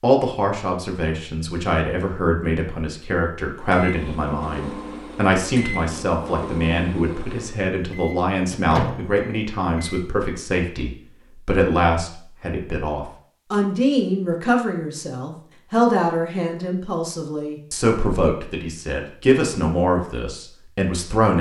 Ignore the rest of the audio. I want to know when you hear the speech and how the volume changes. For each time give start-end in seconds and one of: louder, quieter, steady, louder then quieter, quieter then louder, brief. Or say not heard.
0.0-21.3 steady.